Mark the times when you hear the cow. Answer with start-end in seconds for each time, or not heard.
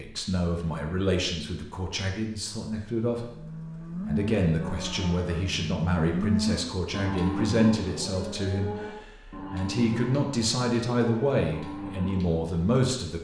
3.1-12.6.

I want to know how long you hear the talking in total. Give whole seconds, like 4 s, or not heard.
13 s.